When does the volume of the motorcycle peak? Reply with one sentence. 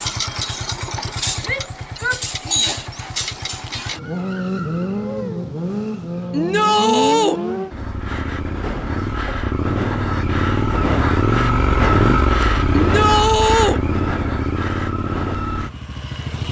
The volume of the motorcycle peaks at 12 seconds.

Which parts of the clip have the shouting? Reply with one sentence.
The shouting can be heard from 1.4 to 2.8 s, from 6.3 to 7.4 s and from 12.7 to 13.8 s.